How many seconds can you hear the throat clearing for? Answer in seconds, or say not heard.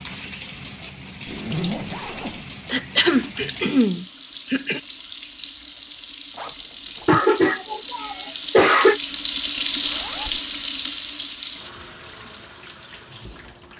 4 s.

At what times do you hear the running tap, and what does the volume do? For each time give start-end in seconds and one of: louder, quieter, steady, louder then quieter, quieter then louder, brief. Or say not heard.
0.0-13.7 louder then quieter.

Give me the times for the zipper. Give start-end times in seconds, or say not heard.
1.2-2.5, 6.3-7.2, 9.8-10.4.